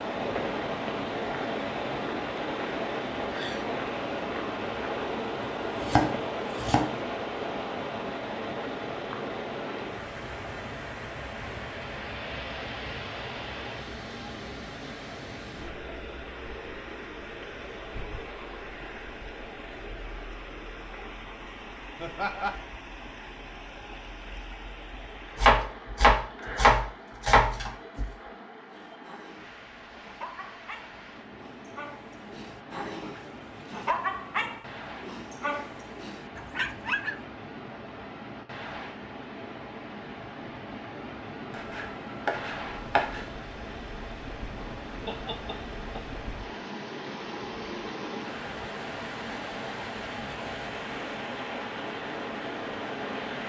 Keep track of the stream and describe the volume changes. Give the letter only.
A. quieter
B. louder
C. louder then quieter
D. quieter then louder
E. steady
D.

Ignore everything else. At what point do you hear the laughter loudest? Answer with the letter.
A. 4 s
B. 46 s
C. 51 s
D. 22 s
D.